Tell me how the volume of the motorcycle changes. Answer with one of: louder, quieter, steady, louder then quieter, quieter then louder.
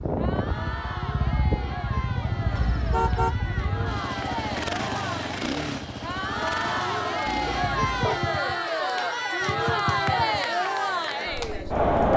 quieter.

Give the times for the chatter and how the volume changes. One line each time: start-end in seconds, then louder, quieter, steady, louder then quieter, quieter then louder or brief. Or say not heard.
0.0-12.1 louder.